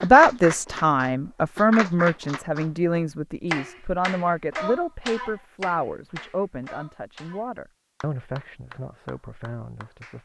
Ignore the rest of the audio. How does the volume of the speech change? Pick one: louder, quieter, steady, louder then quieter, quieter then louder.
quieter.